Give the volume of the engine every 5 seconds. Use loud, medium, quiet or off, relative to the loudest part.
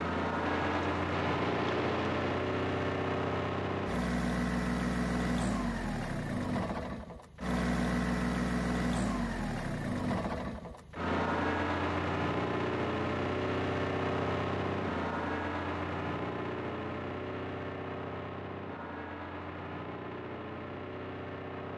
loud, loud, loud, medium, medium.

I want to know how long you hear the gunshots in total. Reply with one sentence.
You can hear the gunshots for 2 seconds altogether.